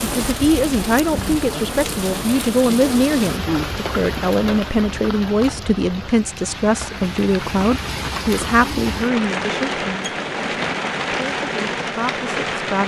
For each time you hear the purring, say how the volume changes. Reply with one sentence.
You can't hear the purring here.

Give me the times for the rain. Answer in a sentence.
You can hear the rain from 0.0 to 12.8 s.